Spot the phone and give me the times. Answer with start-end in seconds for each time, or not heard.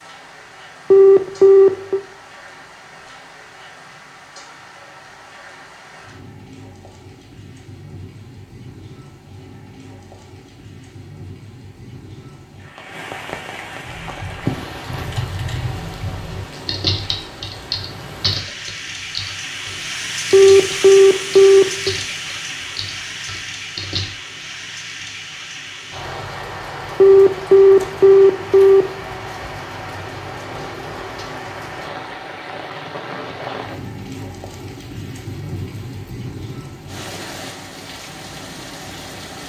0.9-2.0, 20.3-21.9, 27.0-28.9.